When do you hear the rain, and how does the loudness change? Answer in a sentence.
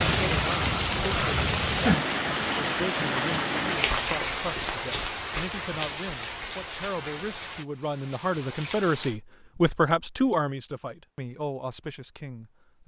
The rain can be heard from 0.0 to 9.2 s, getting quieter.